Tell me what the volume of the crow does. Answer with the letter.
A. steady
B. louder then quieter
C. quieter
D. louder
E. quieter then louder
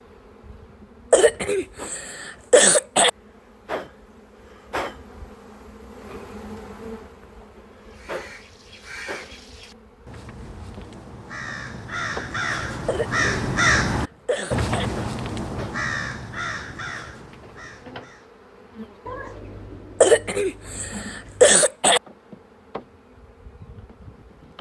B.